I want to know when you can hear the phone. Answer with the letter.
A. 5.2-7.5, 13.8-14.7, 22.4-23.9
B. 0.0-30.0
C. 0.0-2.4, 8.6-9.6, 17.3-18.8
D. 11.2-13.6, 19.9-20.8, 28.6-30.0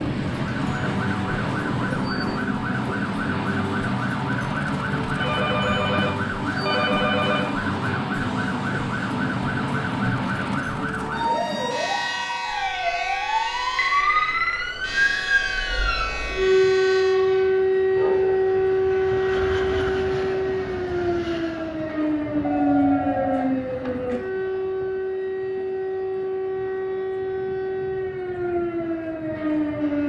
A.